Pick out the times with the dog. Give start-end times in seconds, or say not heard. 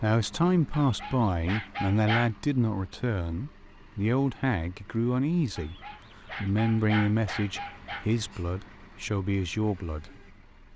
0.7-2.3, 5.5-8.1.